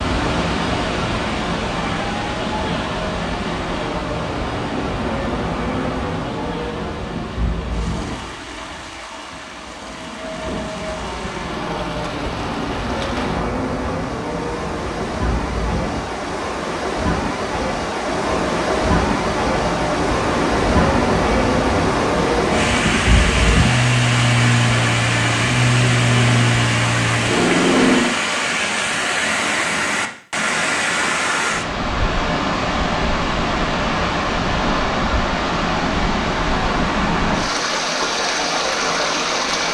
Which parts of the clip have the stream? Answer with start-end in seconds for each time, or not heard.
0.0-39.6.